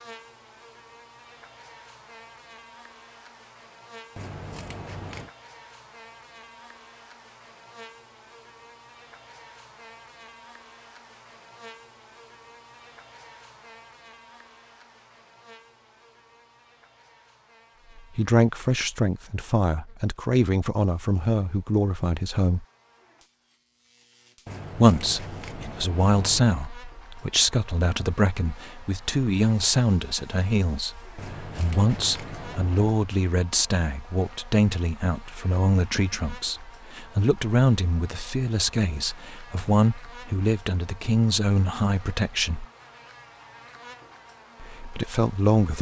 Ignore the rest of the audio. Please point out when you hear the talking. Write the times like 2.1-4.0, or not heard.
18.1-22.6, 24.8-42.6, 44.6-45.7.